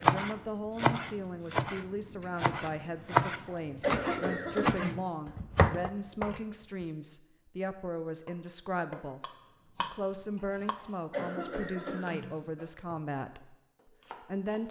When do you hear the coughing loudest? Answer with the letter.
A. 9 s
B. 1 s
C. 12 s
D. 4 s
D.